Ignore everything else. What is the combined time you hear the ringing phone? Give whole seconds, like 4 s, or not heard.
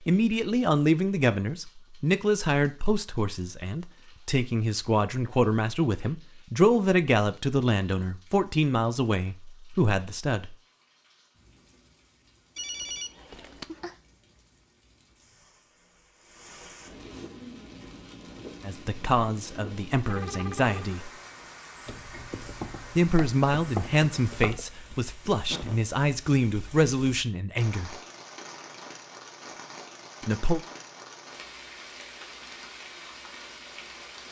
2 s.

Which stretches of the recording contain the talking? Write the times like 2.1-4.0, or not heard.
0.1-10.6, 18.6-21.1, 22.9-27.9, 30.2-30.6.